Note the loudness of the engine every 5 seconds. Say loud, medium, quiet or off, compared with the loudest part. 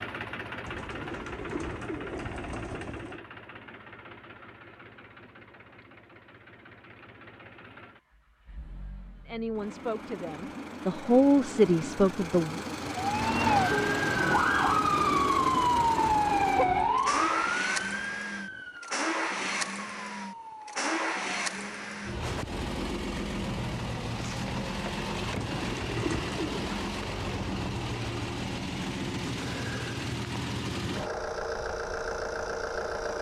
medium, quiet, loud, loud, loud, loud, loud.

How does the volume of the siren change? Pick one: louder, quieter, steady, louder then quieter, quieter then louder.
quieter.